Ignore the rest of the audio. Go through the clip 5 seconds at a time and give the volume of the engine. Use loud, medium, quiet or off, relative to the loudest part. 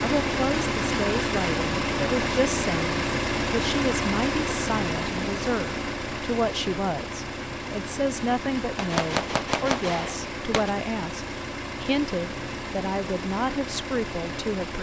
loud, medium, medium.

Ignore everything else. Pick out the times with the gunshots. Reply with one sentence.
You can hear the gunshots from 8.8 to 10.7 s.